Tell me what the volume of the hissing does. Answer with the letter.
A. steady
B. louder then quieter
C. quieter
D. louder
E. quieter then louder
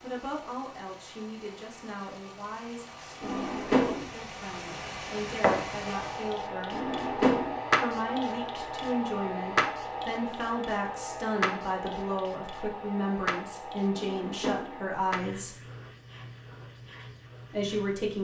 C.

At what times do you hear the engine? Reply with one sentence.
The engine can be heard from 0.0 to 6.5 s.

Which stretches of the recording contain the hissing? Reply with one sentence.
You can hear the hissing from 5.4 to 18.1 s.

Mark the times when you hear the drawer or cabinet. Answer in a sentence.
The drawer or cabinet can be heard from 3.2 to 4.0 s, from 6.7 to 7.5 s and from 13.9 to 14.8 s.